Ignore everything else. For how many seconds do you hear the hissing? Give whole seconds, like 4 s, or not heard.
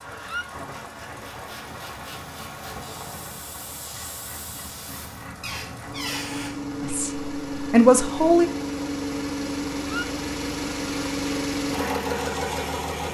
5 s.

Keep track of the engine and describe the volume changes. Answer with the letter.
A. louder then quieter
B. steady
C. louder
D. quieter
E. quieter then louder
C.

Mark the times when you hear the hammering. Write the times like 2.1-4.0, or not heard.
not heard.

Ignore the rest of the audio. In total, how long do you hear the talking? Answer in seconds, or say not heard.
2 s.